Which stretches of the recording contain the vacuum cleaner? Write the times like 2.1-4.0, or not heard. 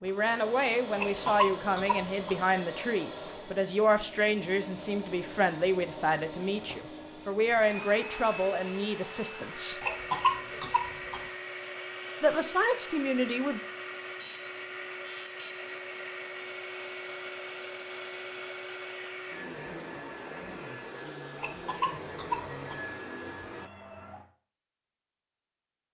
0.0-23.7.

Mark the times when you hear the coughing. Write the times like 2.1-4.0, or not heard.
0.9-2.4, 9.8-11.2, 21.4-22.8.